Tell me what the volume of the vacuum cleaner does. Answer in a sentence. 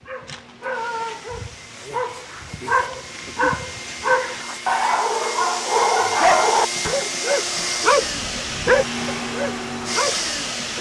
The loudness of the vacuum cleaner goes up.